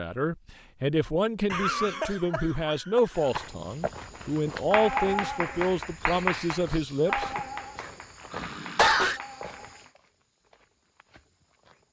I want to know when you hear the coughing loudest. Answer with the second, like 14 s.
9 s.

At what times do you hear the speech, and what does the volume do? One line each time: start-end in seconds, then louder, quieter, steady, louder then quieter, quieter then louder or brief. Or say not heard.
0.0-7.3 steady.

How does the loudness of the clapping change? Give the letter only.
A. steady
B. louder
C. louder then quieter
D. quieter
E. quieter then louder
D.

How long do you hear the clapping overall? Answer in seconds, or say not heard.
6 s.